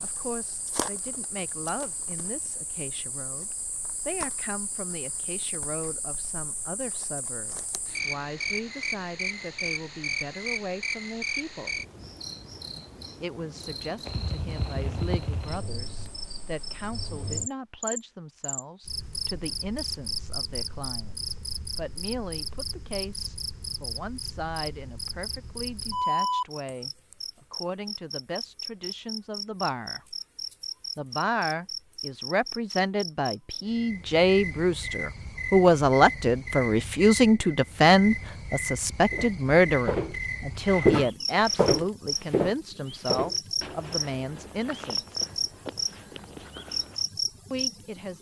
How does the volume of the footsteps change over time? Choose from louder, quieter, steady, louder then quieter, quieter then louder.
quieter.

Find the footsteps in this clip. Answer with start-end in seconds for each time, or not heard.
39.1-47.0.